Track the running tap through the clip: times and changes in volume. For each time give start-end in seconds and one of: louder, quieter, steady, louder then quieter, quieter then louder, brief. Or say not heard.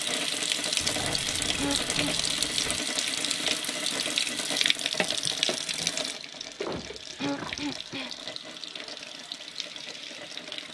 0.0-10.7 quieter.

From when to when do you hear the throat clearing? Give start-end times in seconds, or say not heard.
1.6-2.1, 7.2-8.1.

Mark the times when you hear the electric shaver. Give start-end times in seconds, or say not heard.
not heard.